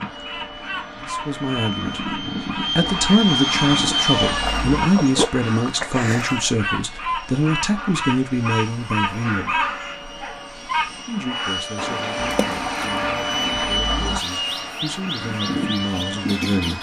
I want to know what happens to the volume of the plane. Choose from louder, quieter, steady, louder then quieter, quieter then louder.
quieter then louder.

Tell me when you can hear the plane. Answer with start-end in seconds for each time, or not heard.
0.0-16.7.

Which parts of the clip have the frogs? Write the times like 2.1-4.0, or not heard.
not heard.